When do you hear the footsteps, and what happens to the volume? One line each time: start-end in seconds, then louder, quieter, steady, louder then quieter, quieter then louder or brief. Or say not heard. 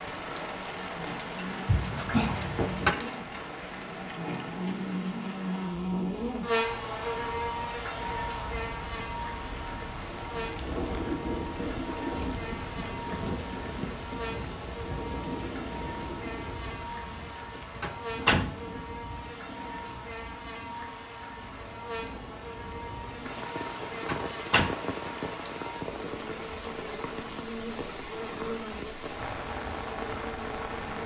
not heard.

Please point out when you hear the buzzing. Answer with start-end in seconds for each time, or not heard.
0.0-31.0.